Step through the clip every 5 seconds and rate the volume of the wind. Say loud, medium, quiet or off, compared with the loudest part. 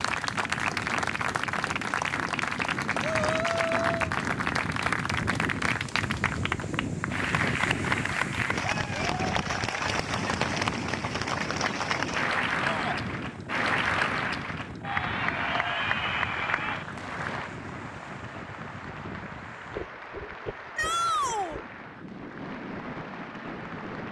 loud, loud, loud, medium, medium.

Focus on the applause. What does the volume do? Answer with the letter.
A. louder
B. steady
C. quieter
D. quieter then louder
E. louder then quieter
C.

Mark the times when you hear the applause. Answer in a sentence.
You can hear the applause from 0.0 to 24.0 s.